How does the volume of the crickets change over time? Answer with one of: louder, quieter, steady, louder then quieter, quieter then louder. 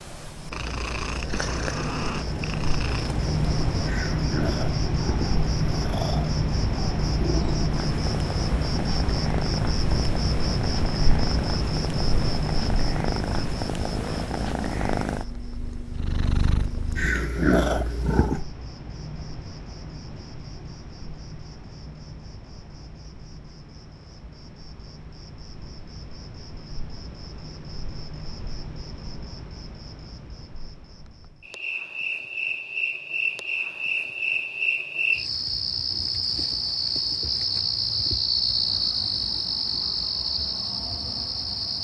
quieter then louder.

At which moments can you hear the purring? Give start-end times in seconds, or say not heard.
0.0-18.4.